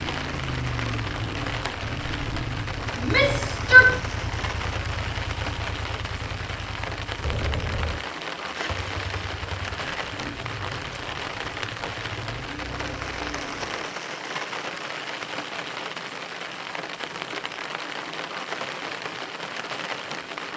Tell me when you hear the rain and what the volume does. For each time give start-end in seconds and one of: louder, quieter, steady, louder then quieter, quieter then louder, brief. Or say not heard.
0.0-20.5 steady.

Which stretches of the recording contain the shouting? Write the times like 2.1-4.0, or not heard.
3.0-4.0.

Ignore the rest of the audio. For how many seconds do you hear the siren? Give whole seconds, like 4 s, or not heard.
not heard.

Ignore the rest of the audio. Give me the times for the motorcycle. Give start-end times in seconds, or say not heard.
0.0-13.8.